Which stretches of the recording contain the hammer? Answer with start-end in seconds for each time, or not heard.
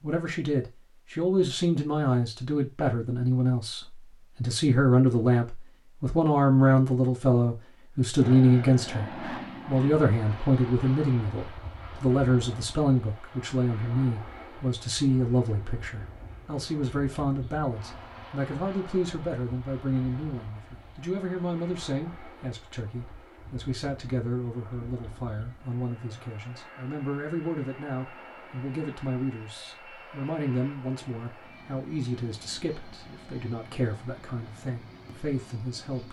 not heard.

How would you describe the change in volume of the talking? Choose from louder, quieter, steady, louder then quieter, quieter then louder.
quieter.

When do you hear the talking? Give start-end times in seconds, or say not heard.
0.0-36.0.